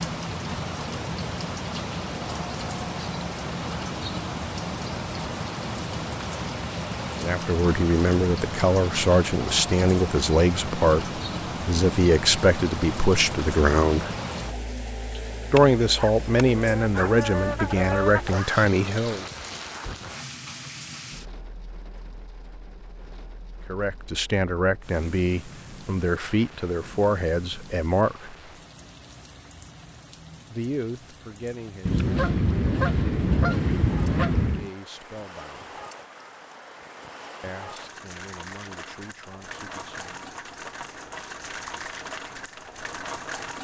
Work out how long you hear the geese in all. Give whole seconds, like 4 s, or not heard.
6 s.